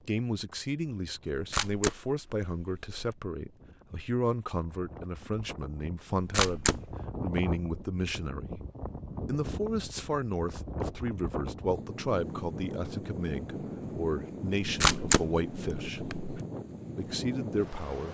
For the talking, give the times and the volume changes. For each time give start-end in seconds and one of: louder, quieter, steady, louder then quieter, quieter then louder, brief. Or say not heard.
0.1-8.6 steady
9.2-16.0 steady
16.9-18.0 brief.